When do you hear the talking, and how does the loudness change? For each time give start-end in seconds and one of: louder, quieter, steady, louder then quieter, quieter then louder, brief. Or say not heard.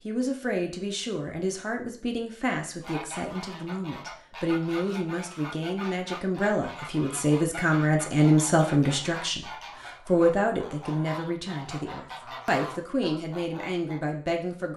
0.1-14.7 louder then quieter.